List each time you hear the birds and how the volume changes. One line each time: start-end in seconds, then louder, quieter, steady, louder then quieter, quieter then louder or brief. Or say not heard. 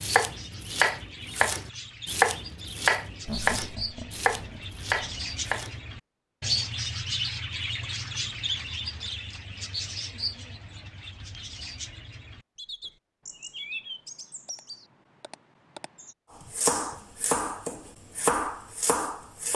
0.0-16.1 louder then quieter.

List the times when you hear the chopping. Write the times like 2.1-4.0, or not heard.
0.0-5.8, 16.4-19.4.